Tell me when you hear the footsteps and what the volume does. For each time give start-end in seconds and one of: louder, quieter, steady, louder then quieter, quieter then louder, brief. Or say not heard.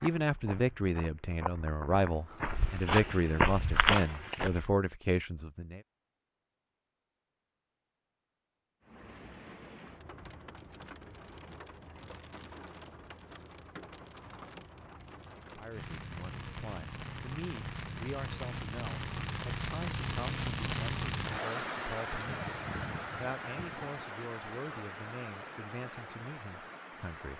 0.0-4.7 louder.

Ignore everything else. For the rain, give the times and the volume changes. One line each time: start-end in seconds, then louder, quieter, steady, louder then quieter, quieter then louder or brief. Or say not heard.
8.8-27.3 louder then quieter.